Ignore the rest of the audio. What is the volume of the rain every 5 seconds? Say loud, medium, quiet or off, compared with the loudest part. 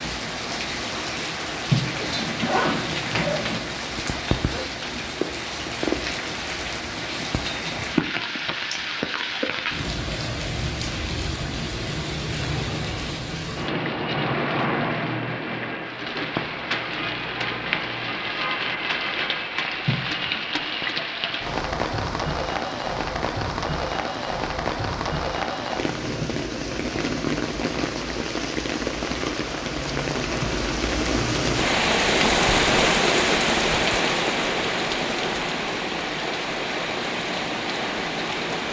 medium, medium, medium, medium, medium, medium, loud, medium.